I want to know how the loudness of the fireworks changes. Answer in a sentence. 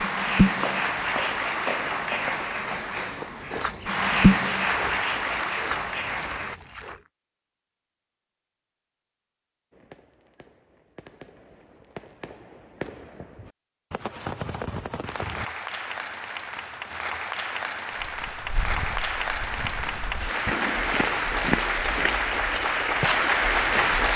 The loudness of the fireworks goes up.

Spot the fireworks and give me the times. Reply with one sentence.
You can hear the fireworks from 9.7 to 15.5 s.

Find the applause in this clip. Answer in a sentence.
The applause can be heard from 0.0 to 6.5 s and from 15.1 to 24.1 s.